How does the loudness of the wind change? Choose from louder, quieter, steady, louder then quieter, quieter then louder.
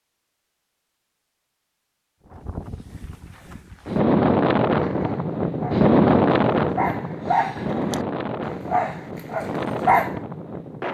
louder then quieter.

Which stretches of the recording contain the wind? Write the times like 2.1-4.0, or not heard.
2.2-10.8.